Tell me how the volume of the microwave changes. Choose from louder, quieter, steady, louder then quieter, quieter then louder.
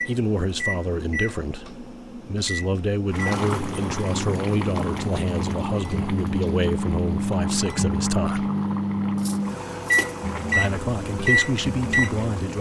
louder.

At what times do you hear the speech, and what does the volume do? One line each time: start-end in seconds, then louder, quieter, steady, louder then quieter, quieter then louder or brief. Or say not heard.
0.1-8.5 steady
10.6-12.5 brief.